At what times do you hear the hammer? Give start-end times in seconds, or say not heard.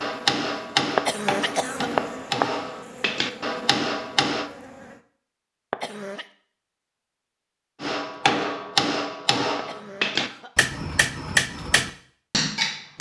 0.0-4.5, 7.8-12.9.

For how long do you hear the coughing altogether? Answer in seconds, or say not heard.
3 s.